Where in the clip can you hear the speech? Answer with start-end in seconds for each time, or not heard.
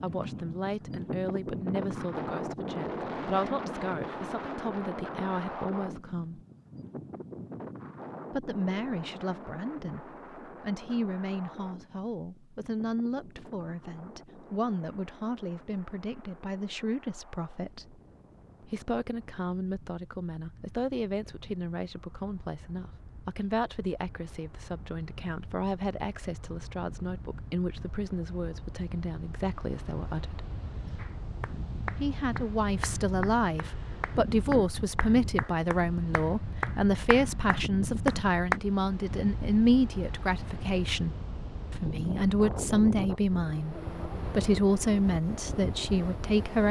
0.0-6.4, 8.3-18.0, 18.6-30.4, 31.9-46.6.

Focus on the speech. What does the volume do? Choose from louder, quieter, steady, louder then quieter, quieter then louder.
louder.